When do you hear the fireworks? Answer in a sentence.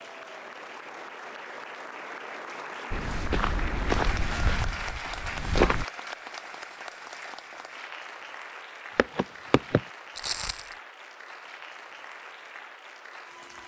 You can't hear the fireworks here.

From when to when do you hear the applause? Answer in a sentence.
You can hear the applause from 0.0 to 13.6 s.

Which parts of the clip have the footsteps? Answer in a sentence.
You can hear the footsteps from 2.9 to 5.8 s and from 8.9 to 10.8 s.